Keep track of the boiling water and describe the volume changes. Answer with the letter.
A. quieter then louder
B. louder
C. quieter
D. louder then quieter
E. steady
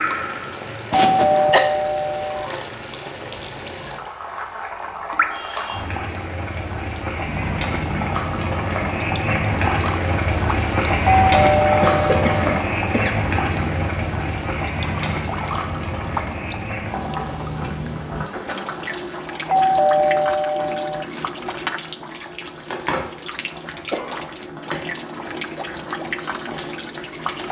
D.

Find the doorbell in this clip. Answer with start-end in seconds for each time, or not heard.
0.9-2.5, 11.2-12.4, 19.4-21.1.